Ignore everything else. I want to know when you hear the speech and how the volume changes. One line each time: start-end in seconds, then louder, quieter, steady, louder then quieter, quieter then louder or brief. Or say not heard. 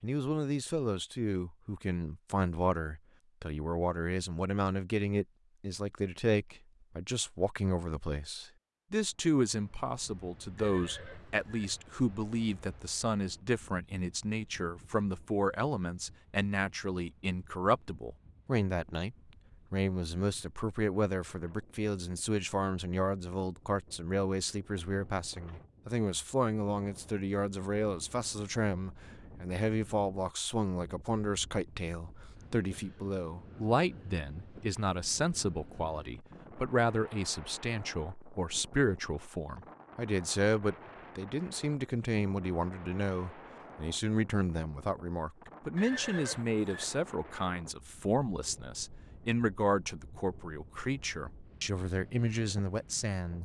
0.0-53.3 steady.